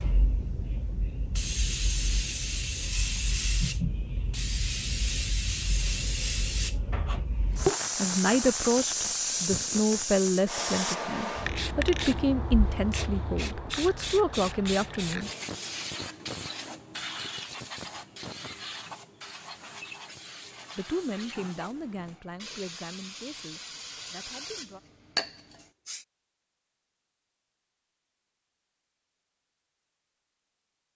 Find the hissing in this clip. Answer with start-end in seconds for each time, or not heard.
0.0-26.1.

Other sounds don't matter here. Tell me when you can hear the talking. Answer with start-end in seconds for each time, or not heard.
8.0-15.3, 20.8-24.8.